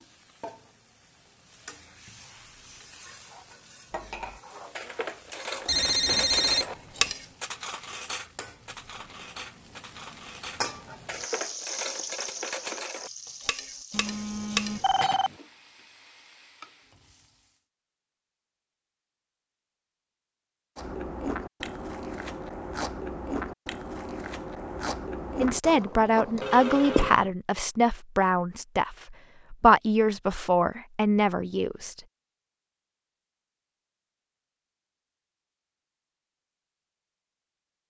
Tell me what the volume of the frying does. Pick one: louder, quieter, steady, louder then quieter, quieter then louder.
louder then quieter.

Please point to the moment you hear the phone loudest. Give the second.
6 s.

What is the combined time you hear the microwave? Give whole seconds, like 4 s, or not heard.
not heard.